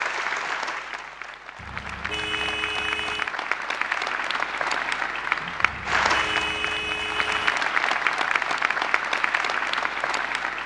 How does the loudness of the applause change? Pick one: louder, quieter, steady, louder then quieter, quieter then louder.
louder.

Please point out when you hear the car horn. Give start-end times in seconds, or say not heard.
1.6-3.3, 5.6-7.6.